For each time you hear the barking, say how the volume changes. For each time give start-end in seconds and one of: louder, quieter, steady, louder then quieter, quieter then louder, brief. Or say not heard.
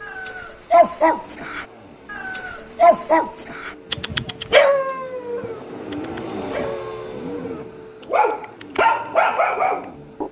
0.0-10.2 quieter then louder.